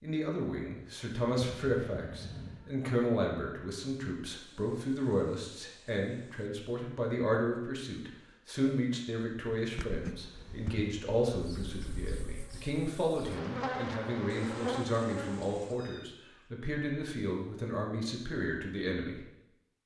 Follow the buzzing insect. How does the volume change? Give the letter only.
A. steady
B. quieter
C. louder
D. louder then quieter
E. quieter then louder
E.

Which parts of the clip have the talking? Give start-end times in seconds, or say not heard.
0.0-19.2.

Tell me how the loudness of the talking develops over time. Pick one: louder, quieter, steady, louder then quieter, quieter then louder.
steady.